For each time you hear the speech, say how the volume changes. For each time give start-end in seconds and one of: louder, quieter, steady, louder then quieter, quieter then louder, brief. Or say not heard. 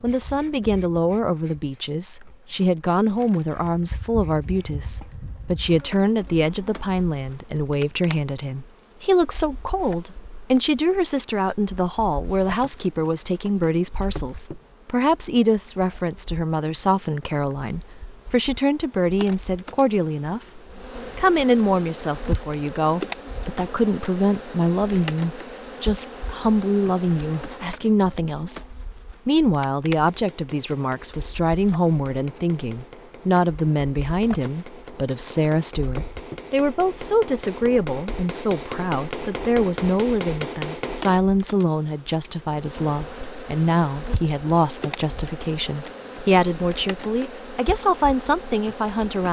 0.0-49.2 steady.